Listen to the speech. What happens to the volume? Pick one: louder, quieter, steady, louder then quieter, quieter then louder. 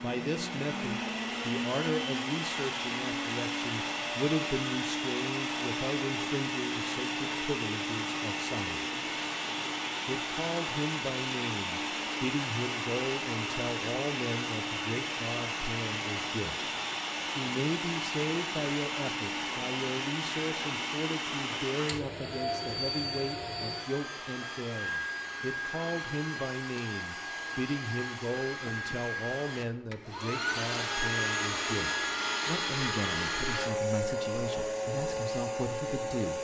steady.